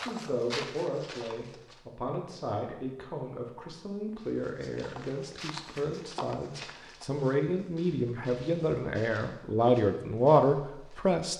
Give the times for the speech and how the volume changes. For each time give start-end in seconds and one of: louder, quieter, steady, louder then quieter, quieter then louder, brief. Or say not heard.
0.0-11.3 louder.